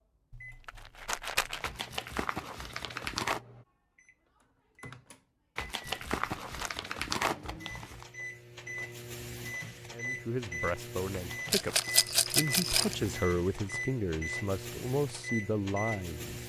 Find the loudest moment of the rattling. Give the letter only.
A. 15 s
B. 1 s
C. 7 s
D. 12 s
D.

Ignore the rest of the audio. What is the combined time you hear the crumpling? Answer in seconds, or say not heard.
7 s.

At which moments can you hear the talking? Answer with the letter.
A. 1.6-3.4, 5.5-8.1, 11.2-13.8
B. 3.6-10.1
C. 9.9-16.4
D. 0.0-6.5
C.